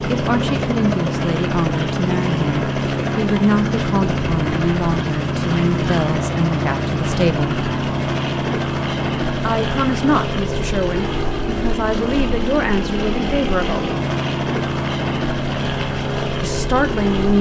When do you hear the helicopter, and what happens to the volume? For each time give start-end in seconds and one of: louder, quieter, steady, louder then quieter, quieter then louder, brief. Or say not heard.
0.0-17.3 steady.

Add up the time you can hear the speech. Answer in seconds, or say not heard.
13 s.